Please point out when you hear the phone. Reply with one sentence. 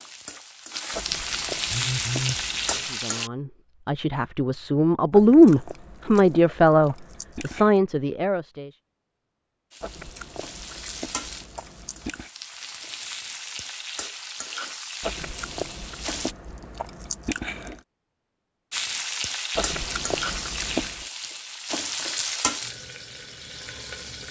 The phone can be heard from 1.7 to 2.4 s.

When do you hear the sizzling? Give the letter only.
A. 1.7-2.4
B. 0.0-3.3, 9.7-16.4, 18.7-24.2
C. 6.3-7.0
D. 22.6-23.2
B.